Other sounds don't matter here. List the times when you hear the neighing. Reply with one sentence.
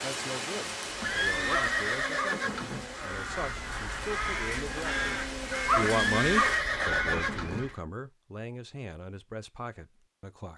You can hear the neighing from 1.0 to 2.9 s and from 5.8 to 7.7 s.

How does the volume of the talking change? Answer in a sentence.
The volume of the talking goes up, then down.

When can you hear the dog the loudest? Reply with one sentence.
The volume of the dog peaks at 6 seconds.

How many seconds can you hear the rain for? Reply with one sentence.
You can hear the rain for 7 seconds altogether.